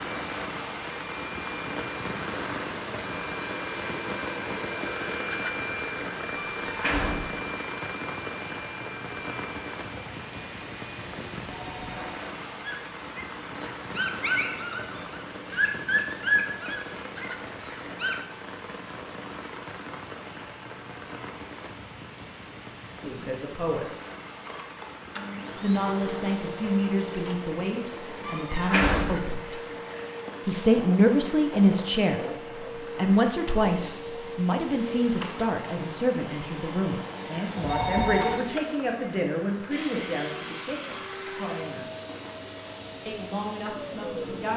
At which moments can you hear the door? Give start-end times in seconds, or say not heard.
6.6-7.3, 28.2-29.1.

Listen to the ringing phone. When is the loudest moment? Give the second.
38 s.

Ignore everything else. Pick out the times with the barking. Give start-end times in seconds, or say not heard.
12.7-18.2.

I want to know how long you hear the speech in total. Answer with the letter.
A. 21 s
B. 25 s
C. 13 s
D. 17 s
D.